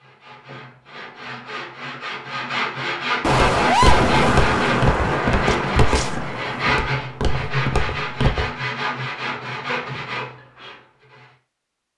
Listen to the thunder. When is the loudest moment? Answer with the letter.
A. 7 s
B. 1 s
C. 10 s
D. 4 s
D.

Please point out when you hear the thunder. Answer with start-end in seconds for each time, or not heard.
3.2-6.8.